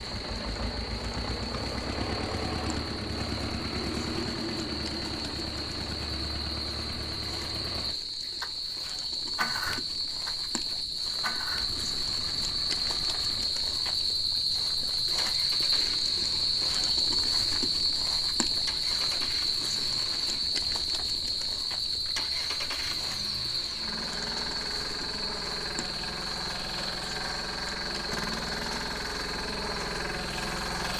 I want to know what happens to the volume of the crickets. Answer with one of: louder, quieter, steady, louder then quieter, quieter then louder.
louder then quieter.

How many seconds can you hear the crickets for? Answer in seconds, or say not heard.
31 s.